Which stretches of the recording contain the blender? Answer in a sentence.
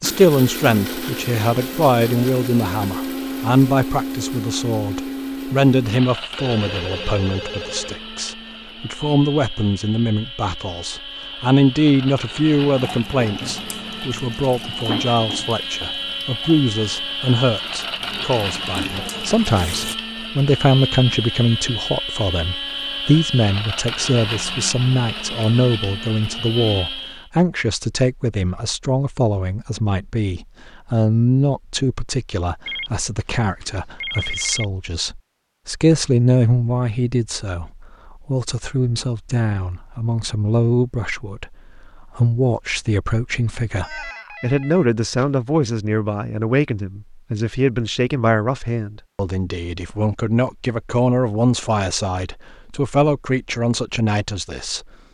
The blender can be heard from 0.0 to 27.3 s.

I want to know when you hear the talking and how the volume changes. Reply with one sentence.
You can hear the talking from 0.0 to 54.9 s, at a steady volume.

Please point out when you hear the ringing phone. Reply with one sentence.
The ringing phone can be heard from 6.3 to 8.0 s, from 32.6 to 34.6 s and from 43.8 to 45.3 s.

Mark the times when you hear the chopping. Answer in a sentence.
You can't hear the chopping here.